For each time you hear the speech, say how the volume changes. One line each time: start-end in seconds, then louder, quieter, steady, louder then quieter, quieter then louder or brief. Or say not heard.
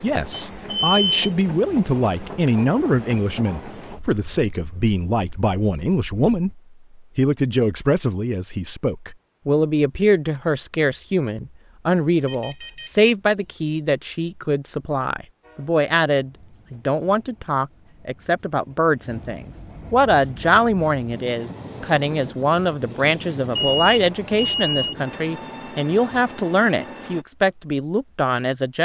0.0-28.8 steady.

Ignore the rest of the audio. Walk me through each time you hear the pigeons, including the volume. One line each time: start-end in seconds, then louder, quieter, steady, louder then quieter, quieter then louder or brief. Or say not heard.
not heard.